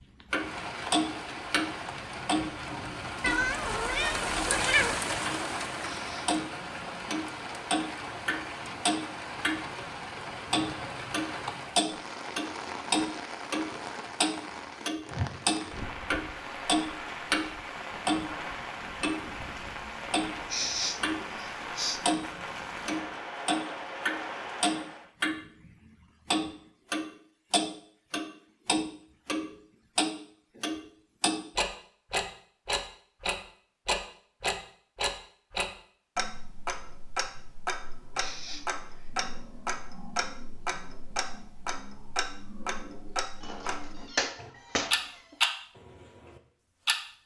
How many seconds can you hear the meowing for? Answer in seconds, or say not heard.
4 s.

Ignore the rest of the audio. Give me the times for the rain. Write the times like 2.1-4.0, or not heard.
0.0-25.1.